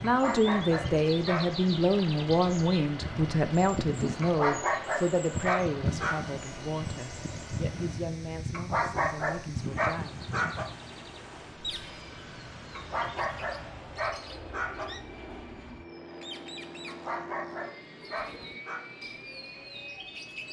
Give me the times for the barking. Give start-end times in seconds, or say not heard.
0.1-1.4, 4.2-6.3, 8.5-10.7, 12.8-14.8, 16.9-18.8.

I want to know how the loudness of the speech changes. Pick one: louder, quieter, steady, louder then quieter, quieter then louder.
quieter.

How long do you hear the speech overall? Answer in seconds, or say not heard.
10 s.